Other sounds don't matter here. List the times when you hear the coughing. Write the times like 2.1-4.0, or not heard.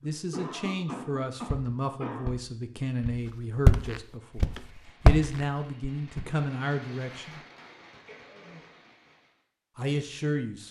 0.0-2.3, 8.1-8.7.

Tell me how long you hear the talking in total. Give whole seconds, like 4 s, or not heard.
8 s.